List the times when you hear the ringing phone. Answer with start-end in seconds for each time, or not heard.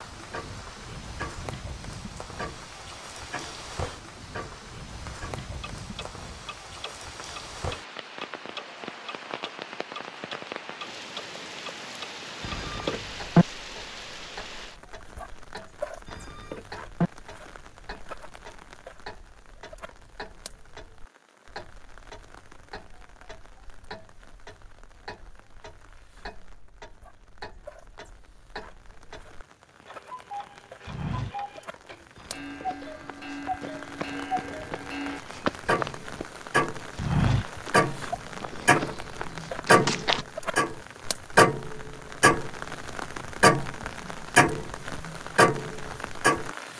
12.4-13.4, 16.1-17.1, 32.1-32.9.